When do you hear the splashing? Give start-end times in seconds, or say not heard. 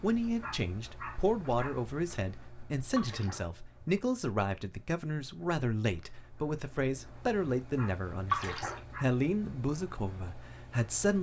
3.0-3.5, 8.3-8.8.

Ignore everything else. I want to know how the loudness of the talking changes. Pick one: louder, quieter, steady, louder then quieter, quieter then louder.
steady.